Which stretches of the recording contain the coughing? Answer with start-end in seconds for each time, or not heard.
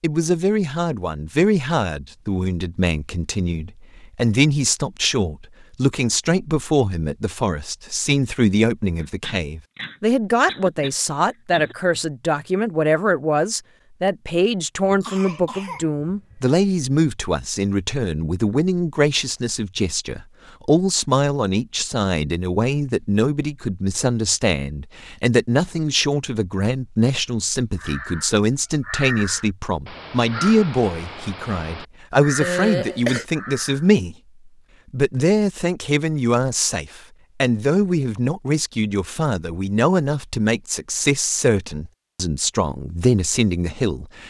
8.9-11.8, 14.8-16.4, 32.4-33.2.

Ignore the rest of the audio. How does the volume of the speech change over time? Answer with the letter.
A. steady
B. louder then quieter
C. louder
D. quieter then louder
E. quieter
A.